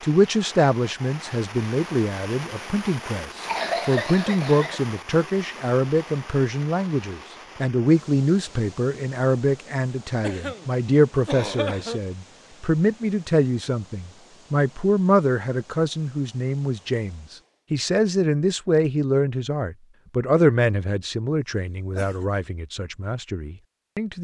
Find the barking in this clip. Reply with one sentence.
You can't hear the barking here.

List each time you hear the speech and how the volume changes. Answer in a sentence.
You can hear the speech from 0.0 to 24.2 s, at a steady volume.